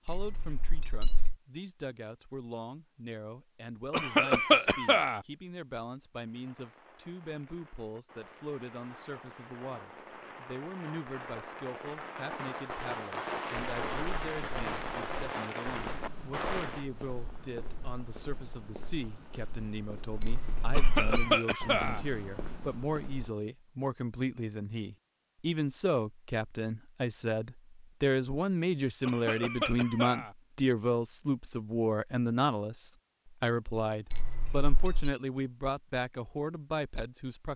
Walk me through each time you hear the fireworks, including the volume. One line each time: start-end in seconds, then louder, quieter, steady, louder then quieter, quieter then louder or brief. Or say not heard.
6.2-16.9 louder.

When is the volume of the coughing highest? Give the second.
4 s.